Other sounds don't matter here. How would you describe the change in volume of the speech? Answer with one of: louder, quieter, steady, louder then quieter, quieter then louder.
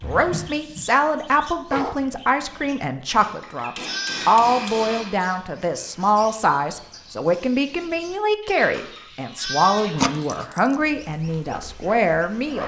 steady.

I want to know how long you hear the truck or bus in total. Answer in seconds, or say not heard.
not heard.